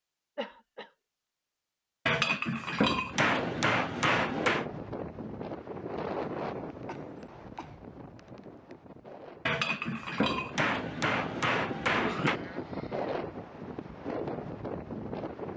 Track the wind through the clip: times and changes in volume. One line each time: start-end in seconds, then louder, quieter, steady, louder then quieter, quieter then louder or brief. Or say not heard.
3.0-15.5 quieter then louder.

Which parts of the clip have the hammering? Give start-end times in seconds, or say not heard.
2.0-4.7, 9.4-12.4.